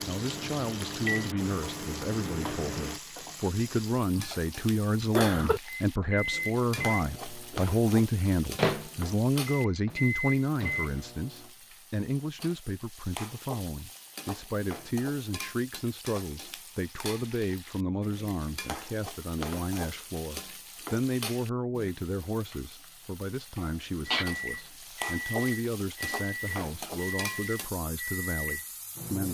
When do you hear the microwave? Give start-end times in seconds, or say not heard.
0.0-3.0, 5.7-11.5, 24.1-29.2.